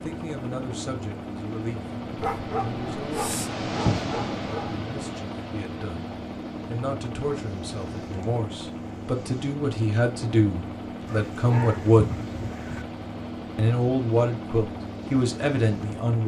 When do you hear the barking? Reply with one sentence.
The barking can be heard from 2.1 to 4.8 s and from 11.1 to 12.8 s.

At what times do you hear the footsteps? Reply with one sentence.
The footsteps can't be heard in this clip.